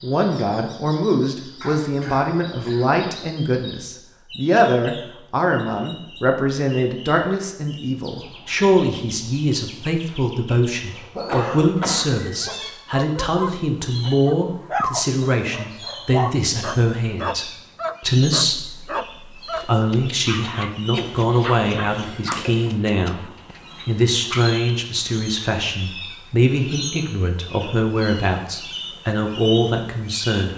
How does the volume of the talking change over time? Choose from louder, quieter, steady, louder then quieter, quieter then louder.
steady.